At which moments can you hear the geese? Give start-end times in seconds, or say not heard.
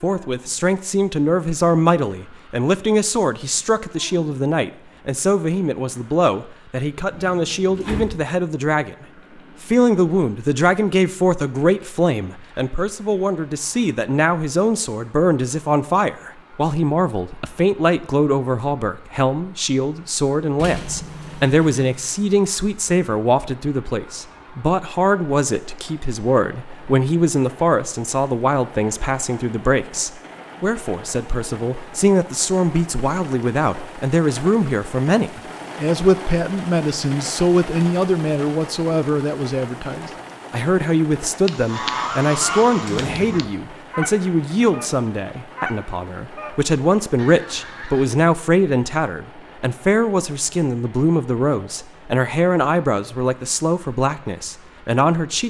41.5-48.0.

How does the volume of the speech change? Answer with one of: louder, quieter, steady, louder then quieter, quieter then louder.
steady.